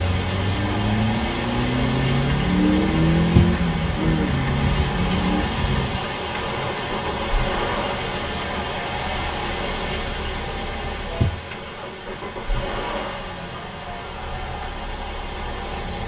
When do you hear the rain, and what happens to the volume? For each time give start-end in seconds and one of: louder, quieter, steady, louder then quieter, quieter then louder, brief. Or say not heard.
0.0-16.0 quieter.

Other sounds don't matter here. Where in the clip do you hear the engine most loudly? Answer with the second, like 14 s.
3 s.